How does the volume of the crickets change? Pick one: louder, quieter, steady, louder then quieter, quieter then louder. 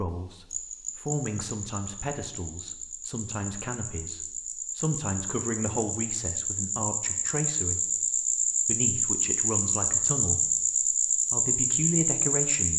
louder.